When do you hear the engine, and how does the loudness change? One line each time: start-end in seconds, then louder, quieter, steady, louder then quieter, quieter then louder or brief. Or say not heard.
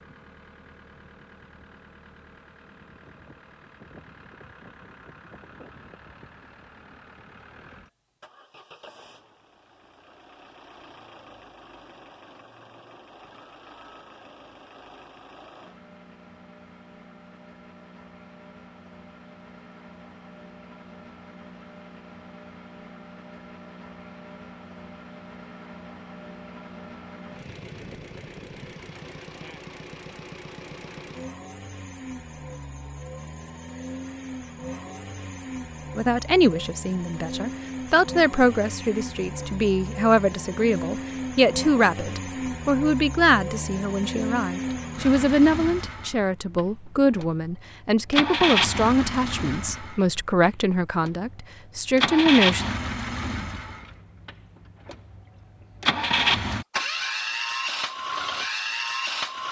0.0-59.4 louder.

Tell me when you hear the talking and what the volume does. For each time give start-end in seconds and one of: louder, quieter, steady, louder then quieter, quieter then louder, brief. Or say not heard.
36.0-52.6 steady.